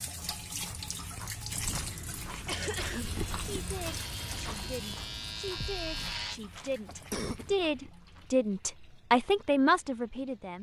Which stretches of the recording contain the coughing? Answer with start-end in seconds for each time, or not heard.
1.9-3.2, 6.5-7.5.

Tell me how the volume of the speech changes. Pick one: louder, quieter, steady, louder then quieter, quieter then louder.
louder.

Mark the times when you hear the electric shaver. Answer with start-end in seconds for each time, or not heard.
3.0-6.4.